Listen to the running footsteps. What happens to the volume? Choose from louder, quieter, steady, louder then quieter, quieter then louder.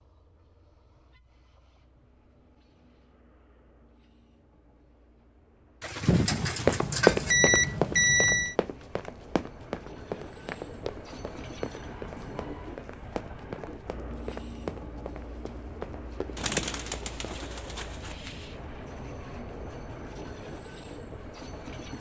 quieter.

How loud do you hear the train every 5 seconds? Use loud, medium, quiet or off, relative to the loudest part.
quiet, medium, loud, loud, loud.